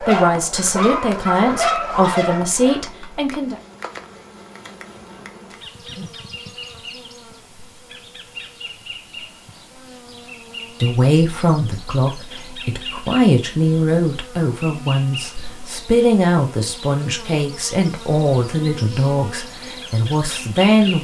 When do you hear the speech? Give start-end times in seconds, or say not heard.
0.0-3.5, 10.8-20.9.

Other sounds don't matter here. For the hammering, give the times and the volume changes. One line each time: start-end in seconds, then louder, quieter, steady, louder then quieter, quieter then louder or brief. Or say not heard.
not heard.